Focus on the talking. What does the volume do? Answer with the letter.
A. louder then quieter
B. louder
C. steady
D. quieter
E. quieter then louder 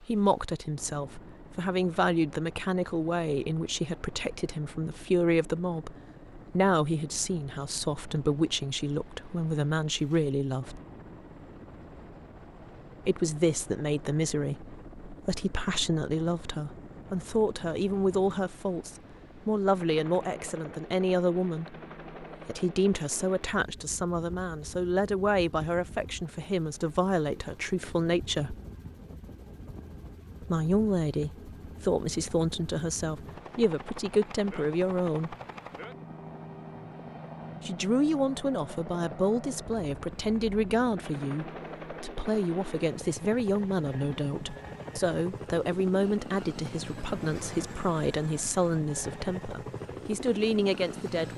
C.